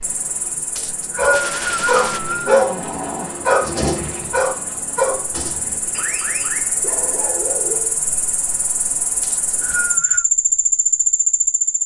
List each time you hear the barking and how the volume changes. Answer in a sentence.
The barking can be heard from 1.1 to 8.0 s, getting quieter.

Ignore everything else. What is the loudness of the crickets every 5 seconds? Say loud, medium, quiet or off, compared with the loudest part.
quiet, medium, loud.